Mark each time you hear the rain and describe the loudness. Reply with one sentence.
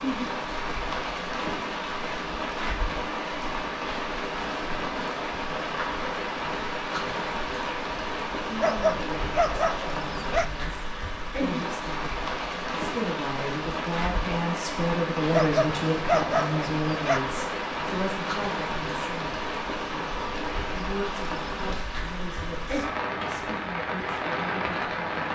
You can hear the rain from 0.0 to 25.3 s, at a steady volume.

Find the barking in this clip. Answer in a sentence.
You can hear the barking from 8.6 to 10.4 s and from 15.3 to 17.2 s.